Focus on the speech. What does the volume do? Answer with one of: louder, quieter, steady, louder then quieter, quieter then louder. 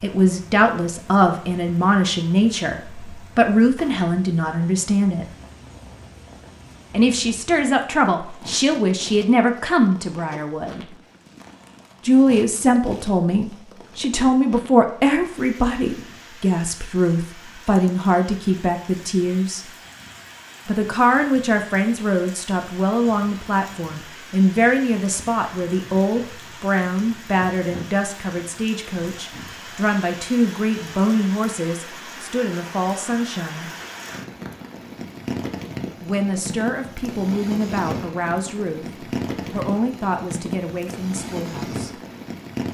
quieter.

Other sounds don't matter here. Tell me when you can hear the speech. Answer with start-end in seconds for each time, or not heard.
0.0-5.2, 6.9-10.8, 12.1-19.6, 20.6-33.7, 36.0-42.0.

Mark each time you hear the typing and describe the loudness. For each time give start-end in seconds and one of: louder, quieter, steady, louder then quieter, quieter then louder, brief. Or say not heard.
not heard.